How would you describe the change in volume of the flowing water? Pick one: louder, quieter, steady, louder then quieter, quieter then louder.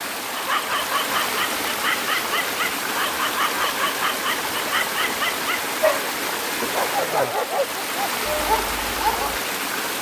steady.